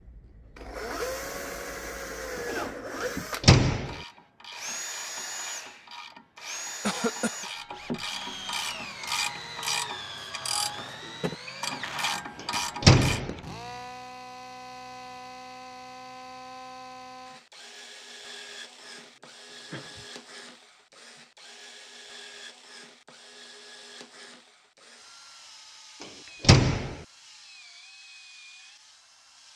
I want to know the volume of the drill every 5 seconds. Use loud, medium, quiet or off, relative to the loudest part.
loud, loud, medium, medium, quiet, quiet.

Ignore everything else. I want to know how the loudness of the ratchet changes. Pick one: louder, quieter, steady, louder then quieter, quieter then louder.
louder.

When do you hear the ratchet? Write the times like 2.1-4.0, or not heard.
3.8-13.2.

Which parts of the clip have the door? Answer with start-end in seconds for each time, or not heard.
3.4-4.0, 12.8-13.3, 26.4-26.9.